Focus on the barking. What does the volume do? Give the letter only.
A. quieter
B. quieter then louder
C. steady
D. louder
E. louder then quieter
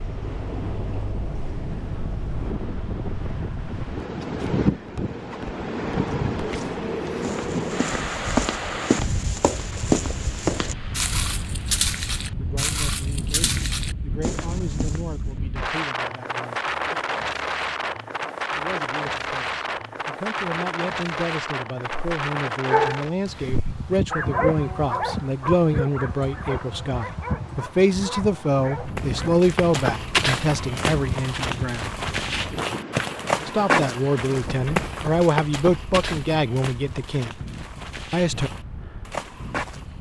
E.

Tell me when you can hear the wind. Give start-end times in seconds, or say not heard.
0.0-39.9.